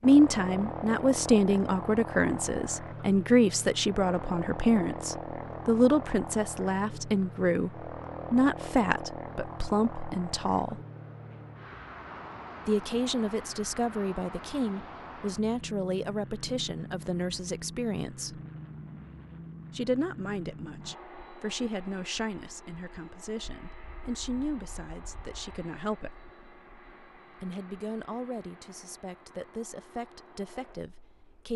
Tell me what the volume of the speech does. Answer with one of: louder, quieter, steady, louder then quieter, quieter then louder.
quieter.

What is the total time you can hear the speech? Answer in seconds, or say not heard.
27 s.